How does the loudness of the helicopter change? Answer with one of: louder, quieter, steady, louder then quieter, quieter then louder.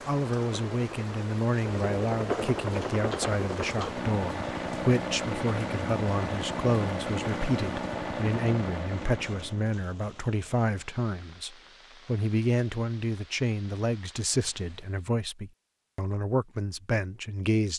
steady.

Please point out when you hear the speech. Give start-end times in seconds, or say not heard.
0.1-17.7.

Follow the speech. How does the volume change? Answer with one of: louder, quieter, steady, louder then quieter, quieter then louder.
steady.